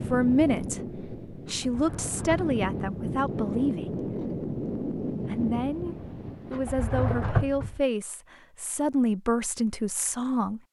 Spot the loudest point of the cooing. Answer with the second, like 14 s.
7 s.